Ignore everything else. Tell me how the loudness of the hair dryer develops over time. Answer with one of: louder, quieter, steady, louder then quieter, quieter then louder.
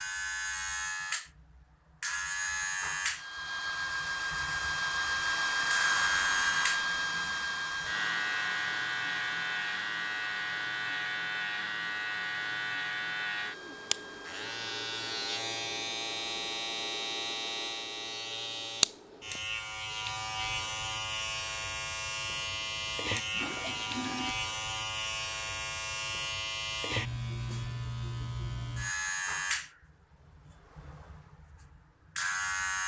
quieter.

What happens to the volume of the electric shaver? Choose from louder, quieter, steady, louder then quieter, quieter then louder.
steady.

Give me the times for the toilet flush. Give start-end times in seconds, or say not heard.
22.3-24.4.